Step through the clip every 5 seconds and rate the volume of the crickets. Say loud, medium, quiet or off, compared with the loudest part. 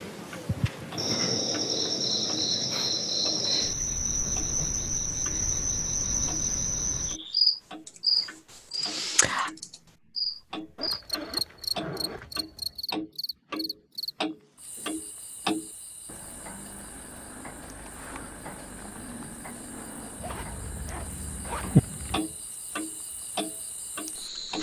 loud, loud, medium, quiet, quiet.